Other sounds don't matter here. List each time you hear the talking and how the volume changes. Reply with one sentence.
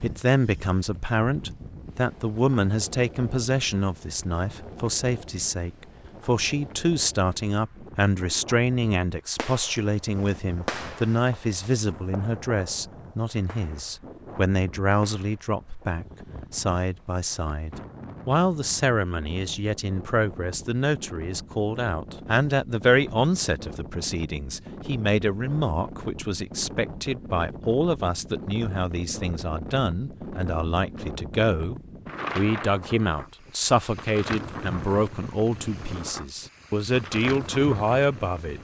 You can hear the talking from 0.0 to 38.6 s, at a steady volume.